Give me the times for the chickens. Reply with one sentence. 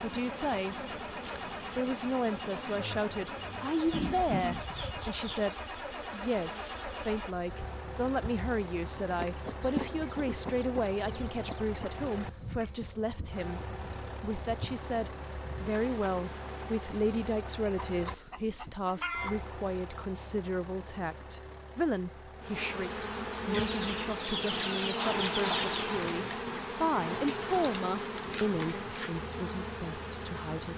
The chickens can be heard from 3.8 to 5.5 s, from 9.2 to 12.1 s, from 17.9 to 19.5 s and from 23.5 to 25.8 s.